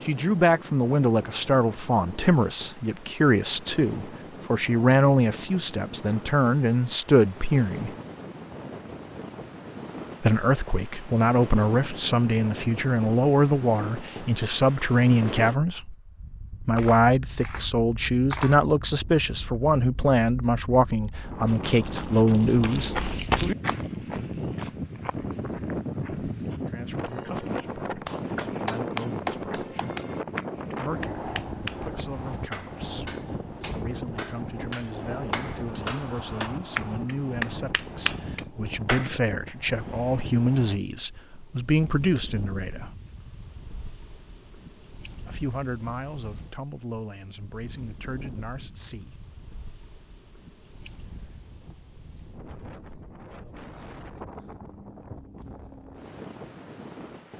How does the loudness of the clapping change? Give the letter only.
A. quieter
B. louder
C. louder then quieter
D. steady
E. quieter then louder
E.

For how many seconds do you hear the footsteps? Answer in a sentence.
You can hear the footsteps for 5 seconds altogether.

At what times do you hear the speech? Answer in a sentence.
You can hear the speech from 0.0 to 7.9 s, from 10.2 to 15.9 s, from 16.6 to 22.9 s, from 26.6 to 29.9 s, from 30.7 to 42.9 s and from 45.2 to 49.2 s.